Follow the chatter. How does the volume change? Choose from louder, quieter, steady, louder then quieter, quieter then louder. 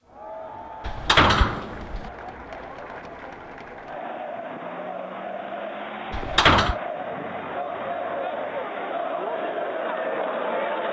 louder.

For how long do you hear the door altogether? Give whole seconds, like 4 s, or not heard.
2 s.